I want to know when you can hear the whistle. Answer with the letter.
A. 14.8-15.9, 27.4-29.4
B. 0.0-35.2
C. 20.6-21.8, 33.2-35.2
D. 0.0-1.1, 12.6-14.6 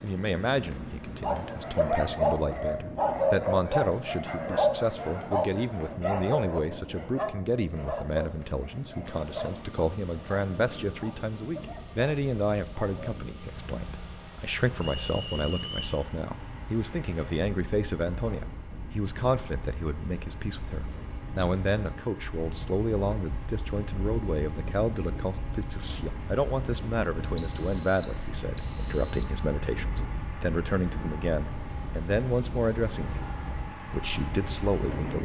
A.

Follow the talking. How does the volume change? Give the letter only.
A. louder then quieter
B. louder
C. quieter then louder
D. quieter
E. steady
E.